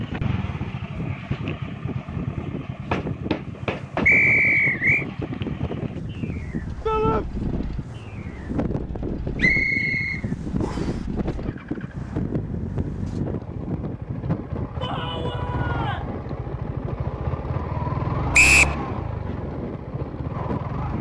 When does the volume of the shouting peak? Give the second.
7 s.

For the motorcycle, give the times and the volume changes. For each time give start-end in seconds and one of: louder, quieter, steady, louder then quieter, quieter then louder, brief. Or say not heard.
0.0-20.9 quieter then louder.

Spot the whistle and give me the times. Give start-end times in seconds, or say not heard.
4.0-5.0, 9.4-10.9, 18.3-18.8.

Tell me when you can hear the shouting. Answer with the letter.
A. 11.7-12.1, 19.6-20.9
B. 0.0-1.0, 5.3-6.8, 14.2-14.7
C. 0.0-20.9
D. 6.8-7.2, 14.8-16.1
D.